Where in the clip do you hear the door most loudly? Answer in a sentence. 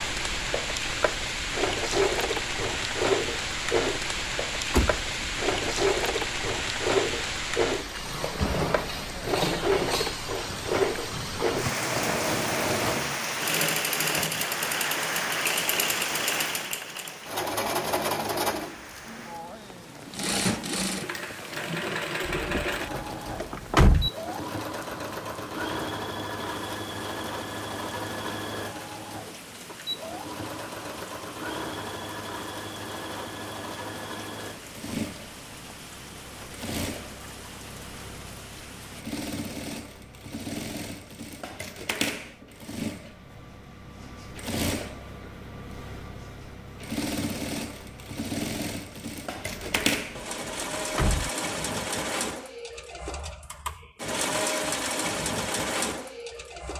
The volume of the door peaks at 24 seconds.